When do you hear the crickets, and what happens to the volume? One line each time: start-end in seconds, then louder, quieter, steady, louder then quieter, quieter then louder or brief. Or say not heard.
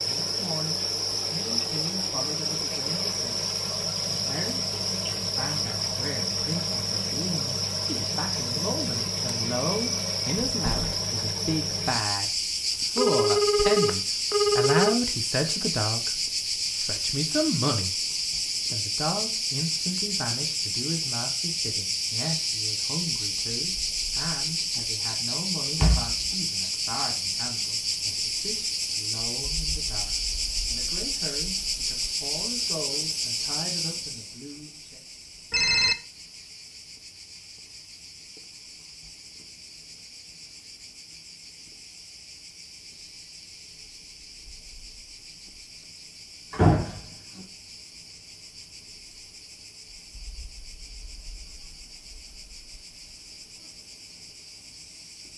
0.0-55.3 quieter.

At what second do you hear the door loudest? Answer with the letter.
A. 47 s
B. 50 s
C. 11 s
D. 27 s
A.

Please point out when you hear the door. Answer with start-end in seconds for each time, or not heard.
10.4-11.0, 25.8-26.3, 46.5-47.0.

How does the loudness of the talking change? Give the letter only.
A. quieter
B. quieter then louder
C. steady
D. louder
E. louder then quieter
E.